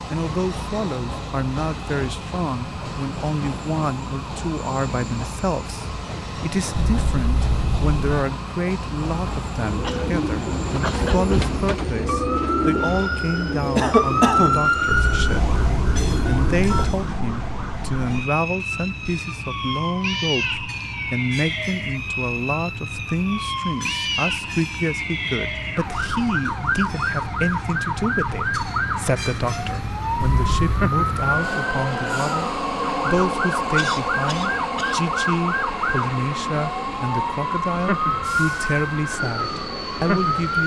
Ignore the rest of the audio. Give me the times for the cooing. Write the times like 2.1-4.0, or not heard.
9.6-16.6.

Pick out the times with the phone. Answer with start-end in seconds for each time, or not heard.
6.7-8.2, 14.8-17.1, 30.1-30.9.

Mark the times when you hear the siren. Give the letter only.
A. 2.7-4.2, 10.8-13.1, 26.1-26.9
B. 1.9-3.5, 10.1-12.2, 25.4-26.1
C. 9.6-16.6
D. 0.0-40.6
D.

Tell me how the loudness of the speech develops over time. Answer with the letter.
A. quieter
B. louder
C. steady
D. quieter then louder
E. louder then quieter
C.